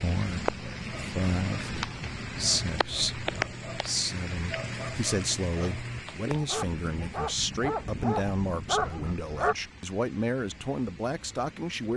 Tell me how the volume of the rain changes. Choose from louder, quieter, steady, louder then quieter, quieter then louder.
quieter.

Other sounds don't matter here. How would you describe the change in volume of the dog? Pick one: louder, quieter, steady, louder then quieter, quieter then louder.
louder.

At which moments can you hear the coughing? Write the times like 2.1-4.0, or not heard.
not heard.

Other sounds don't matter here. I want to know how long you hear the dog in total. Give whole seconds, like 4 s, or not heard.
9 s.